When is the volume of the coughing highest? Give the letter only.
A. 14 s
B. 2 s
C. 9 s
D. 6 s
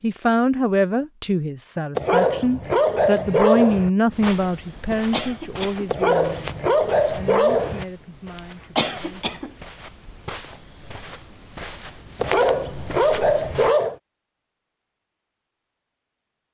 C.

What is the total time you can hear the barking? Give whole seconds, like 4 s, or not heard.
6 s.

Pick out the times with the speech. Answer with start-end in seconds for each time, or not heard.
0.0-9.3.